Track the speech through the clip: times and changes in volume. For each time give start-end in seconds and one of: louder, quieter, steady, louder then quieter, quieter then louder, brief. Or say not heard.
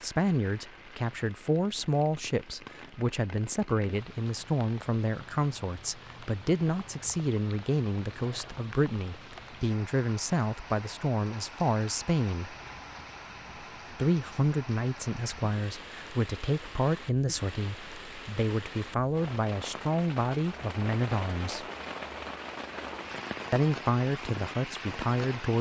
0.0-12.6 steady
13.9-21.6 steady
23.5-25.5 brief.